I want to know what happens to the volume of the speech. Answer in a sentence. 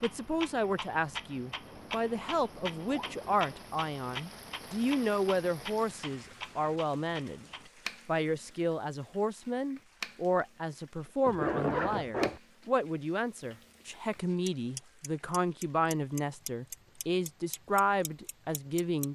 The loudness of the speech stays about the same.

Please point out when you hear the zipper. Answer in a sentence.
The zipper can be heard from 1.6 to 3.5 s and from 11.2 to 12.4 s.